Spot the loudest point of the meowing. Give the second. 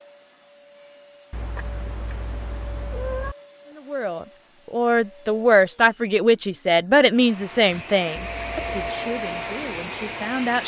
3 s.